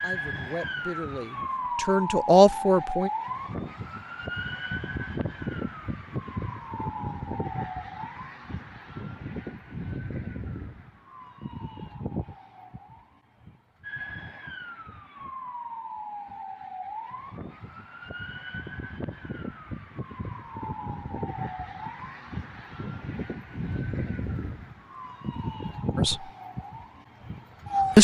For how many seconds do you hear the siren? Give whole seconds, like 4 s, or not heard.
28 s.